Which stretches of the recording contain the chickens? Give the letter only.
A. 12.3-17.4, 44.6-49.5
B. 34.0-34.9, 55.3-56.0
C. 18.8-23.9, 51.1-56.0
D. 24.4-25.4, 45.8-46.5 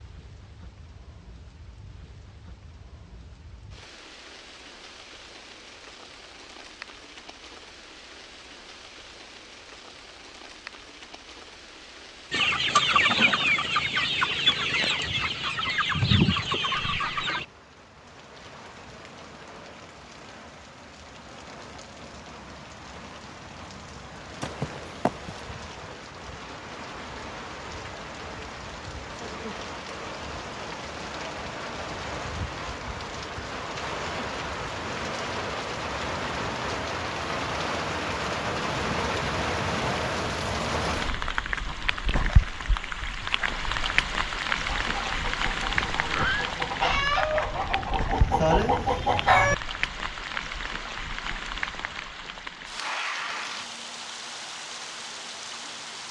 A.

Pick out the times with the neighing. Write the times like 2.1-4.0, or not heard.
24.4-25.4, 45.8-46.5.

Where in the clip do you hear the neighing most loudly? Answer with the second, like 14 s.
46 s.